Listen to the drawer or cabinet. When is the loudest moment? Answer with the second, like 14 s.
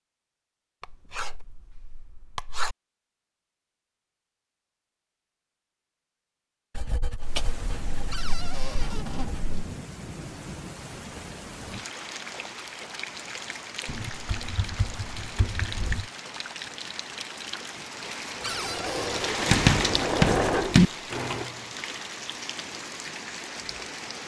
19 s.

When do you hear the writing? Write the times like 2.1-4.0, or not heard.
0.8-2.8, 6.8-9.6, 13.8-16.1, 19.5-20.9.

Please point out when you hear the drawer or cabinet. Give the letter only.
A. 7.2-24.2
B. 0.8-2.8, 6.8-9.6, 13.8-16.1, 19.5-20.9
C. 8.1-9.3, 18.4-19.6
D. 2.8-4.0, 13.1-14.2
C.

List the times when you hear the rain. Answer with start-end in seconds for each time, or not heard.
7.2-24.2.